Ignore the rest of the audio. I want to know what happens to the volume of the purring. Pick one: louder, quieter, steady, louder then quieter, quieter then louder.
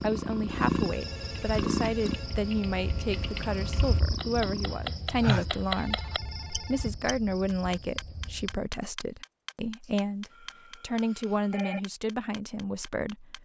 quieter.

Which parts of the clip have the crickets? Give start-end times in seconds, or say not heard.
0.0-8.6.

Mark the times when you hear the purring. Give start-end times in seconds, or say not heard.
0.0-4.8.